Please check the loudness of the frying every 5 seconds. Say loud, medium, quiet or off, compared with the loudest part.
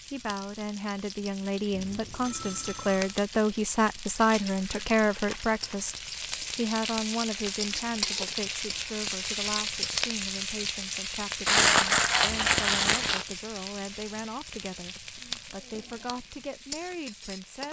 medium, loud, loud, medium.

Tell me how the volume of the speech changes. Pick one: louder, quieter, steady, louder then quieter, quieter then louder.
quieter.